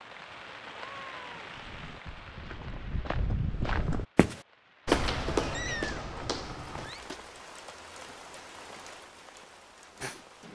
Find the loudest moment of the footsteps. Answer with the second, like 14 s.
5 s.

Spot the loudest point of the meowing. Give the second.
6 s.